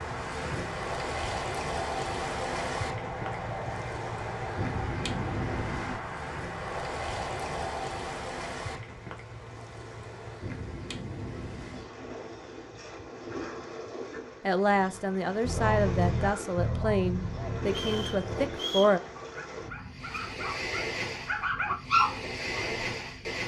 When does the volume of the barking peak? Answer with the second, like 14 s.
22 s.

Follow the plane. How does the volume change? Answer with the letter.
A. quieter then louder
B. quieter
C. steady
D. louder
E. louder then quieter
C.